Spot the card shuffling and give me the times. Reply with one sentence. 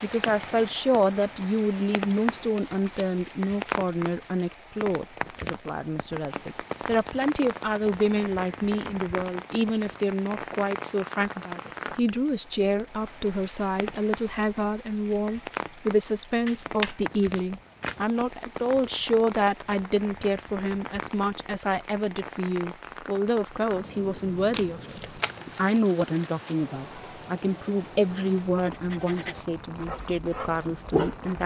The card shuffling can be heard from 2.5 to 3.8 s, from 16.4 to 18.0 s and from 24.5 to 26.6 s.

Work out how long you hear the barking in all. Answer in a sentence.
You can hear the barking for 3 seconds altogether.